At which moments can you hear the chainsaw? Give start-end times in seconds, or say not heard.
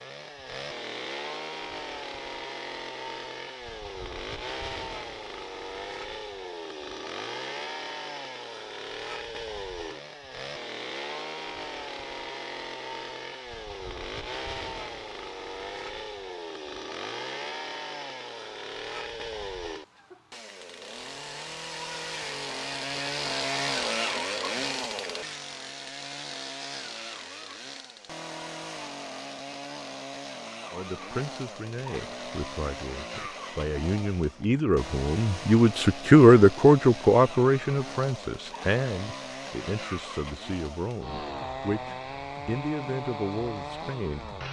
0.0-44.4.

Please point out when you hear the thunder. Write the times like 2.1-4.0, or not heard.
not heard.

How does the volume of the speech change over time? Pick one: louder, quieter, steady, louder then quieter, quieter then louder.
louder then quieter.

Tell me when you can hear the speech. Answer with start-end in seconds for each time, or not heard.
30.7-44.4.